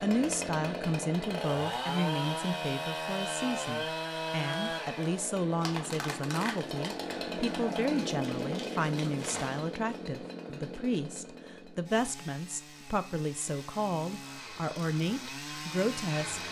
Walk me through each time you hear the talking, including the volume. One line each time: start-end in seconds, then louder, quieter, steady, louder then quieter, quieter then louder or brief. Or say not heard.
0.0-16.4 steady.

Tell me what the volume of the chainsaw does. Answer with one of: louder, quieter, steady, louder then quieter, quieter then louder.
quieter.